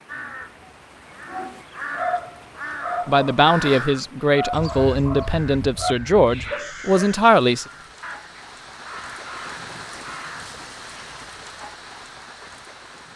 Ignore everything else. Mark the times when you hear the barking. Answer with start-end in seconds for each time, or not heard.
1.2-7.1.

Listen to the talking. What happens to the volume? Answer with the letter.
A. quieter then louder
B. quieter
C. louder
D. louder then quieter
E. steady
E.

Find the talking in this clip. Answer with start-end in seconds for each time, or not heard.
3.0-7.7.